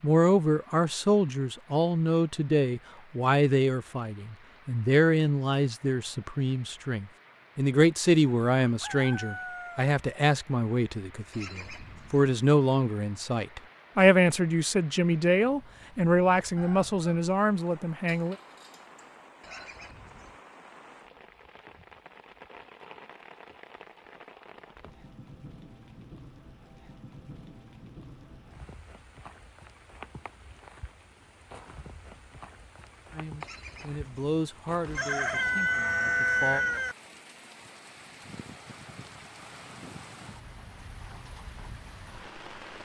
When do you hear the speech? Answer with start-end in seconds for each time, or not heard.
0.0-18.4, 33.1-36.6.